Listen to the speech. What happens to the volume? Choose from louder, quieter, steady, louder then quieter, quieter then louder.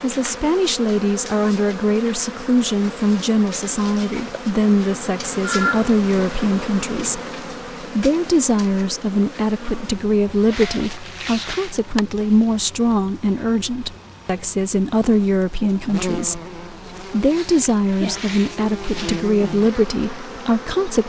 steady.